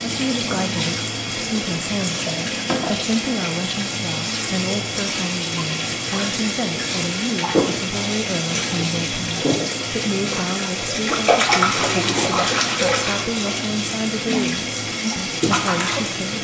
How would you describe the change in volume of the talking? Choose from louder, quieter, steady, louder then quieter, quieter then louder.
steady.